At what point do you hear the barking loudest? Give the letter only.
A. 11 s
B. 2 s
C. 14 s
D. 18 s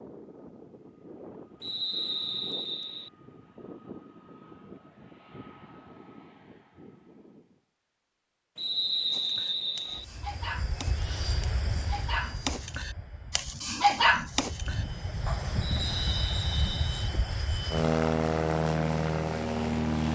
C.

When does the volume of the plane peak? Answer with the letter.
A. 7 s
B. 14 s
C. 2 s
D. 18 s
D.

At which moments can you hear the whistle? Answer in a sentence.
You can hear the whistle from 1.6 to 3.1 s, from 8.6 to 10.1 s and from 15.6 to 17.1 s.